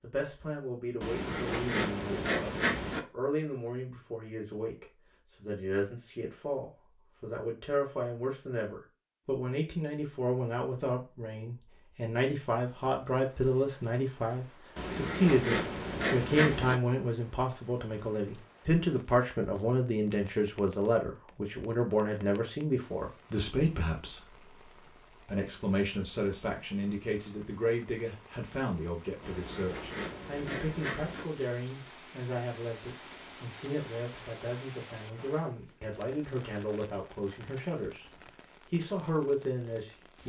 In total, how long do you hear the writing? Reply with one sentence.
You can hear the writing for 6 seconds altogether.